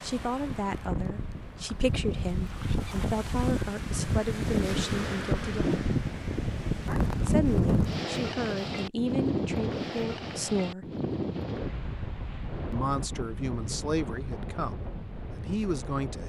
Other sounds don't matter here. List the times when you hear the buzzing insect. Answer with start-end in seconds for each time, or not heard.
not heard.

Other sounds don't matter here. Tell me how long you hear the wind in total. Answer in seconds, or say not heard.
16 s.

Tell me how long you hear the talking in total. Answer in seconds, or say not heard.
12 s.